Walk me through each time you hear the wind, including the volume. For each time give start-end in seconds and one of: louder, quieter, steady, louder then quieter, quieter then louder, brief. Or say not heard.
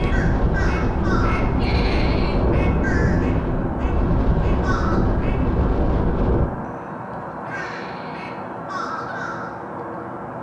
0.0-6.5 steady.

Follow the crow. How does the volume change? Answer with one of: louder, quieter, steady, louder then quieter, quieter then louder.
steady.